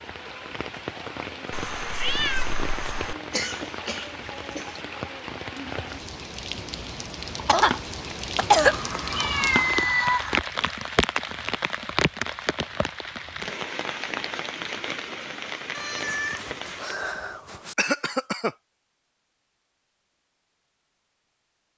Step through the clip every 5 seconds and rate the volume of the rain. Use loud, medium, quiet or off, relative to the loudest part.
medium, loud, loud, medium, off.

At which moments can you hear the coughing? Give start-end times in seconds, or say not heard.
3.3-4.8, 7.5-8.8, 17.8-18.6.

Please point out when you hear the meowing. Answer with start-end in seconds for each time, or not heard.
1.5-3.1, 8.7-10.4, 15.7-17.8.